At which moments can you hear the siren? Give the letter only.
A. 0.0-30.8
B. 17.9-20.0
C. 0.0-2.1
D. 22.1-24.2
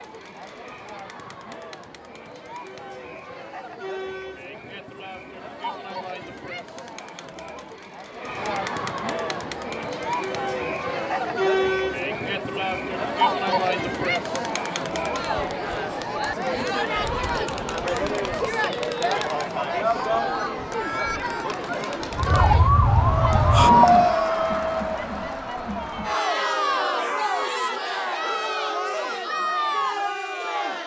D.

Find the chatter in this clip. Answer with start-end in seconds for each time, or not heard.
0.0-30.8.